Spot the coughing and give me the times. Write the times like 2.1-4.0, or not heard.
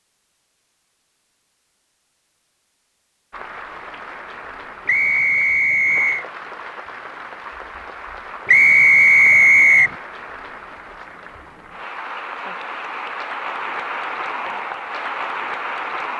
not heard.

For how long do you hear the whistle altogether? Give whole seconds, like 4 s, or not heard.
3 s.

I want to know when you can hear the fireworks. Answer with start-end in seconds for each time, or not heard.
not heard.